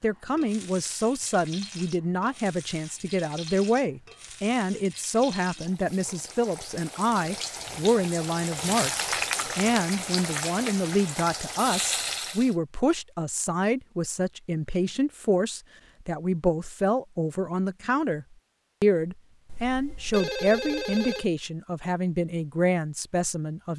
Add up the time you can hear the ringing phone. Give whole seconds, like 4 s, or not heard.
2 s.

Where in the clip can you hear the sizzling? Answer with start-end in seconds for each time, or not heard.
0.0-12.6.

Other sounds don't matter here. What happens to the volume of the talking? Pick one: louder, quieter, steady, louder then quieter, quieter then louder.
steady.